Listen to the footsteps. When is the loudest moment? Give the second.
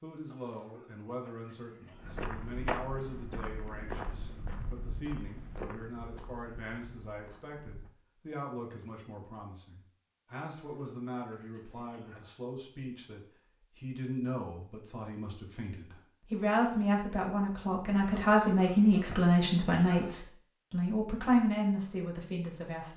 3 s.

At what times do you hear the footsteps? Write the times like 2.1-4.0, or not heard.
1.9-7.9.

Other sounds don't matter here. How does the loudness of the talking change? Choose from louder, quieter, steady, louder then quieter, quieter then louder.
louder.